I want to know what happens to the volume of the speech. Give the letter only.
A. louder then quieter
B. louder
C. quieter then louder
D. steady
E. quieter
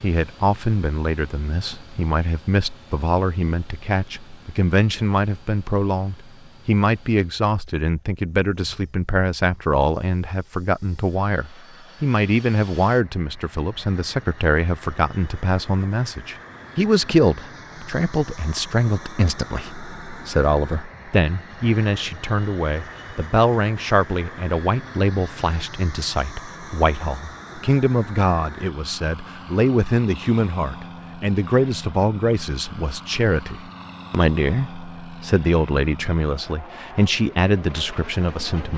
D.